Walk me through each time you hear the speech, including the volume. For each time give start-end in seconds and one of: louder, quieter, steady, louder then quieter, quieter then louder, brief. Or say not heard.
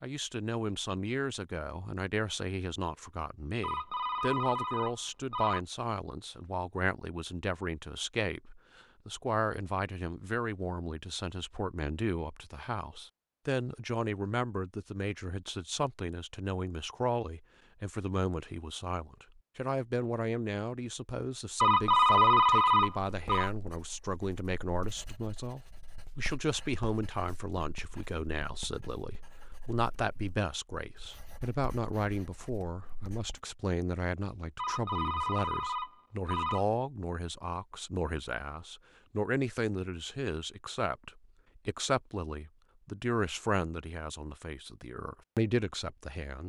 0.0-46.4 steady.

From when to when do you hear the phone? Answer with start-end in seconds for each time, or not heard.
3.6-5.6, 21.6-23.5, 34.5-36.6.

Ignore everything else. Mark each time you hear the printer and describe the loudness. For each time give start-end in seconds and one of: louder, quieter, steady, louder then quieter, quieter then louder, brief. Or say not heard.
not heard.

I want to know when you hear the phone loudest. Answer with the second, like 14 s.
22 s.